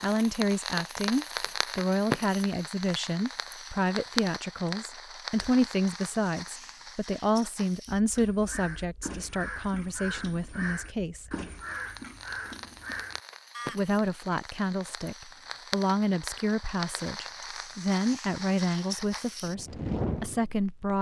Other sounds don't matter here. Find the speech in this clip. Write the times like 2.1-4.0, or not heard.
0.0-11.2, 13.7-20.9.